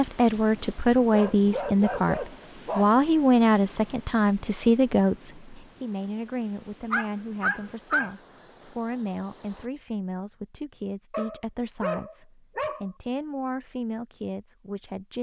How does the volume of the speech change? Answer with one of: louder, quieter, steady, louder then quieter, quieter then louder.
quieter.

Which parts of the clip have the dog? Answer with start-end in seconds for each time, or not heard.
1.1-2.9, 6.9-8.2, 11.1-12.9.